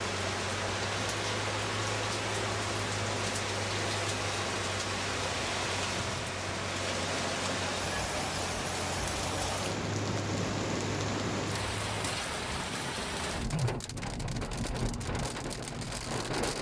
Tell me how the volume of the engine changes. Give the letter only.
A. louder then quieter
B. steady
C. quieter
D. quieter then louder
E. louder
B.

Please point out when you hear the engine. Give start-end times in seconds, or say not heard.
0.0-12.2.